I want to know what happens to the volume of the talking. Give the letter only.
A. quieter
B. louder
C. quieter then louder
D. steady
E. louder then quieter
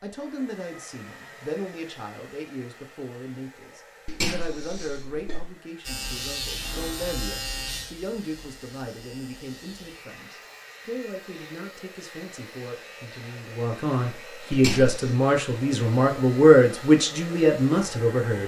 B.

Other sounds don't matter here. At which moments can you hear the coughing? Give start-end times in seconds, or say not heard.
4.0-5.5, 14.5-15.2.